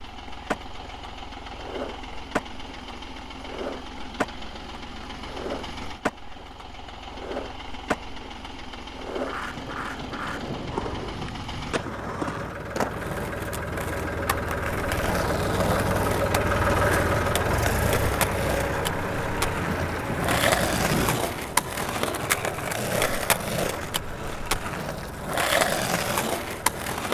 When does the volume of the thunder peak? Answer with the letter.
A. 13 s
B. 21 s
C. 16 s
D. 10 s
B.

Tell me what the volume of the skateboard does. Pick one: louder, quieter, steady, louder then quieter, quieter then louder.
louder.